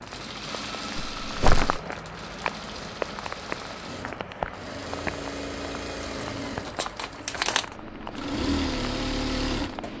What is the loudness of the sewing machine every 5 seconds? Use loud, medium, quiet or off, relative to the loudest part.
medium, loud.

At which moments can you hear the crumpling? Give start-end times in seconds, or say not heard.
1.2-1.8, 6.7-7.7.